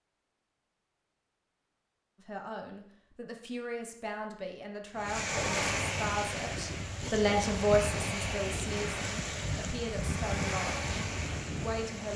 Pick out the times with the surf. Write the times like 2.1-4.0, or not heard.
5.0-12.1.